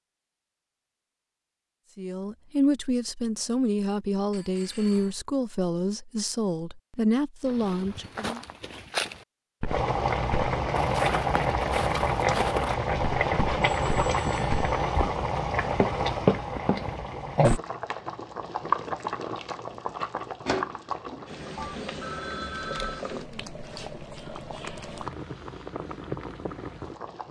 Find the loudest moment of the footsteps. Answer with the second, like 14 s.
16 s.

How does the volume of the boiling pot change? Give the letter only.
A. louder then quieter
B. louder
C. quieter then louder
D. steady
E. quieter
E.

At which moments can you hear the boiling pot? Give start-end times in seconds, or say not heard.
9.7-27.2.